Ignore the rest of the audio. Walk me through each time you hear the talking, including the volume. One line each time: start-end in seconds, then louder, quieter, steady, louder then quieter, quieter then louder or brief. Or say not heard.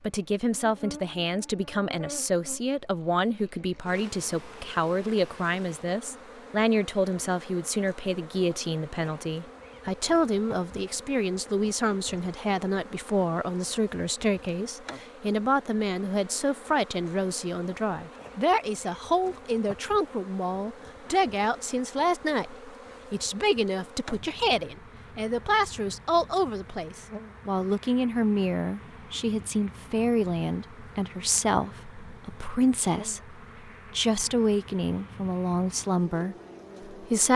0.0-37.3 steady.